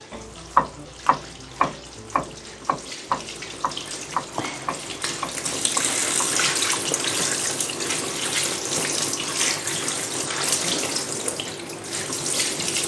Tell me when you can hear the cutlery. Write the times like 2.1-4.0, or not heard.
not heard.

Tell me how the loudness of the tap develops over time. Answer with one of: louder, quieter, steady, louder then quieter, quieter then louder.
louder.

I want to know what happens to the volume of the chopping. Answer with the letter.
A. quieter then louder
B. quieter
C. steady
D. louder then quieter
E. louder
B.